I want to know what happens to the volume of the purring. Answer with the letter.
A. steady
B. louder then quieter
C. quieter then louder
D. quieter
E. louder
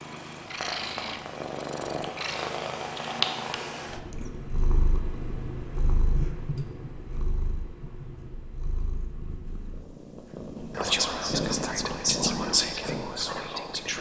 C.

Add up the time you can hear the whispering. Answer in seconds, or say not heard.
3 s.